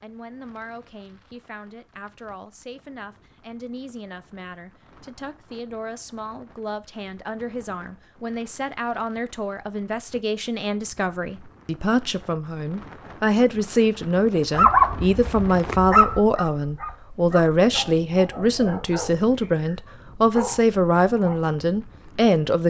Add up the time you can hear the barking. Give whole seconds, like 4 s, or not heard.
7 s.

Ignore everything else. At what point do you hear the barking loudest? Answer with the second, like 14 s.
15 s.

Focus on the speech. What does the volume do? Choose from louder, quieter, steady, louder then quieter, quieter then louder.
louder.